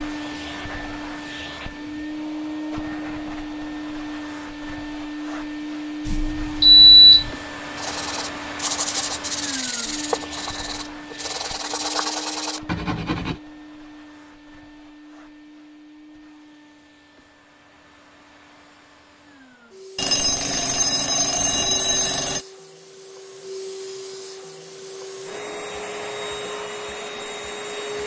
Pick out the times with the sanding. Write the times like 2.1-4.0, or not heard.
7.8-13.4.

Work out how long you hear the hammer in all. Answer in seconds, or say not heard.
not heard.